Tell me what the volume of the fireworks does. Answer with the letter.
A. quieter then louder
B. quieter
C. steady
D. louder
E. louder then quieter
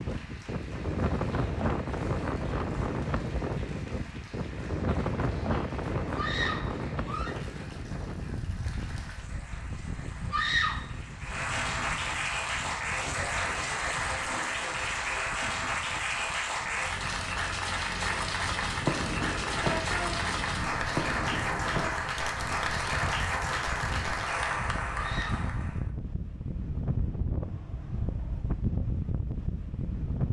B.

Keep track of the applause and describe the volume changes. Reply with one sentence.
The loudness of the applause goes up.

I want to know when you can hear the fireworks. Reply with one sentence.
You can hear the fireworks from 18.7 to 24.4 s.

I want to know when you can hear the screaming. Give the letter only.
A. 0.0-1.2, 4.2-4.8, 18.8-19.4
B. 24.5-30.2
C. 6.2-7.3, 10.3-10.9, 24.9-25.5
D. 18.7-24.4
C.